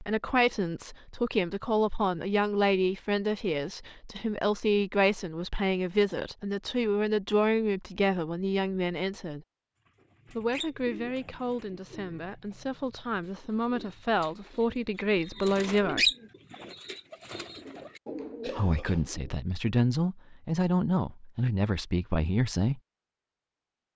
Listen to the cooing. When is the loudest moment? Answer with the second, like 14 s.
16 s.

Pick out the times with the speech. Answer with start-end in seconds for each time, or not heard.
0.0-9.4, 10.3-16.1, 18.4-22.8.